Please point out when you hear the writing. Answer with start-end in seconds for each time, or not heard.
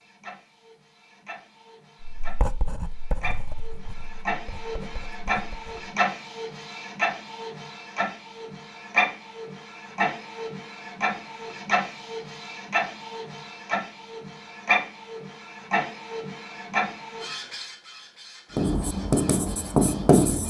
2.0-5.8, 18.6-20.4.